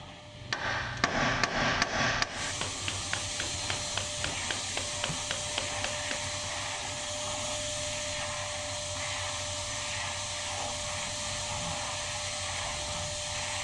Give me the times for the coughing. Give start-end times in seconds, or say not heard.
not heard.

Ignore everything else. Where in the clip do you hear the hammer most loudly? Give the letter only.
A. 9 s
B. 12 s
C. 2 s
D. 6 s
C.